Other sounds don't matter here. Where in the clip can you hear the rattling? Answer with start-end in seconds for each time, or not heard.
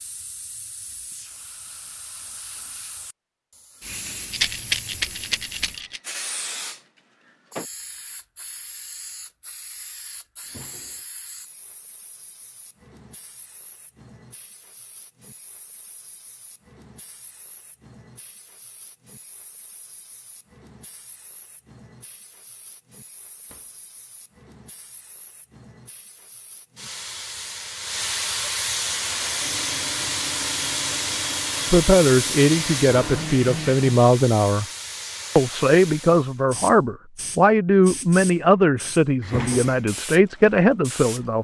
4.3-6.0.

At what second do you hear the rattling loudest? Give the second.
5 s.